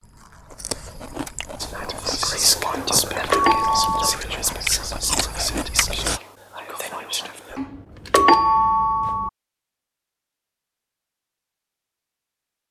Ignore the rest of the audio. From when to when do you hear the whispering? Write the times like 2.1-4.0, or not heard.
1.6-7.6.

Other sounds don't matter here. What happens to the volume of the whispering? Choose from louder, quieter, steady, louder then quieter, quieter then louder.
quieter.